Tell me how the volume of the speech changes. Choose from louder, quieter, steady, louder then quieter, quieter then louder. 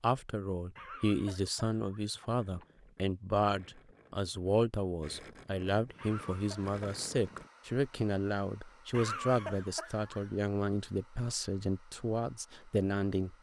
steady.